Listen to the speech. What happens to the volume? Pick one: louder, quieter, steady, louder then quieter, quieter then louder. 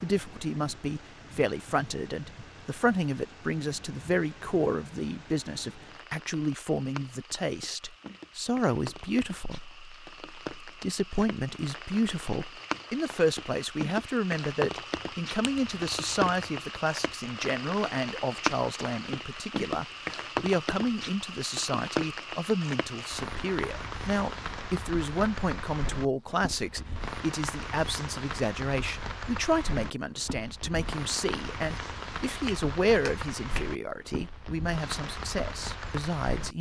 steady.